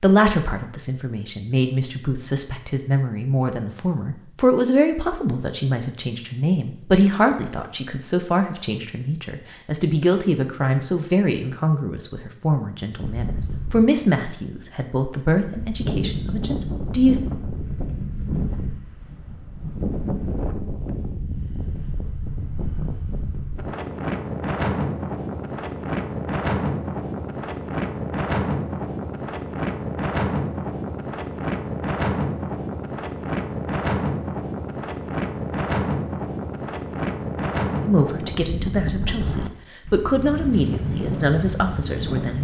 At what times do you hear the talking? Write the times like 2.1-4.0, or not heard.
0.0-17.2, 37.8-42.3.